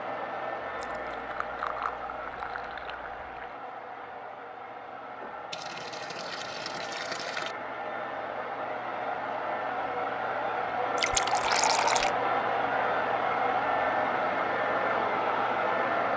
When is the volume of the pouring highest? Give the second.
12 s.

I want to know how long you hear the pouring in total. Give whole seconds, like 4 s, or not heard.
6 s.